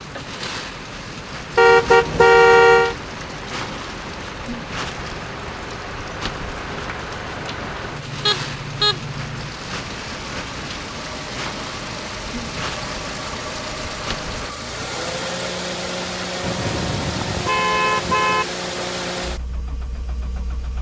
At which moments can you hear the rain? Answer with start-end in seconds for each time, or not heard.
0.0-14.6.